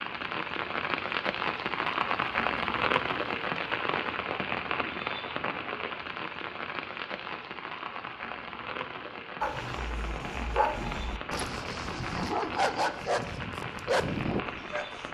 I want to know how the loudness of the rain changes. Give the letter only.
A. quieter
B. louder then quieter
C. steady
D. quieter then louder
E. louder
A.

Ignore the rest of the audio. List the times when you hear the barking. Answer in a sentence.
You can hear the barking from 9.4 to 14.8 s.